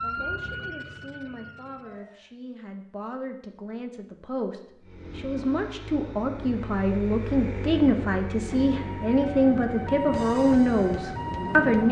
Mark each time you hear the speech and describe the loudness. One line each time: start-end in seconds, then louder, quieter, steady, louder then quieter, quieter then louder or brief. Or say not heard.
0.0-11.8 louder.